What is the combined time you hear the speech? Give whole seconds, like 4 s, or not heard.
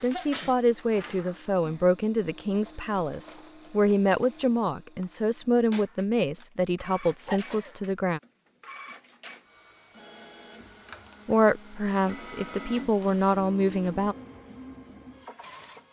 11 s.